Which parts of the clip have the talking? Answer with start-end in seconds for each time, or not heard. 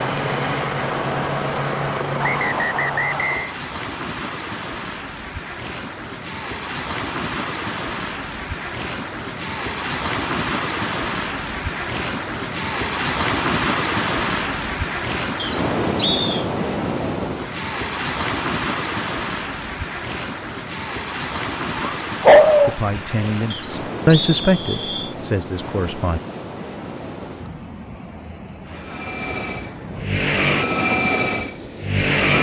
22.6-26.2.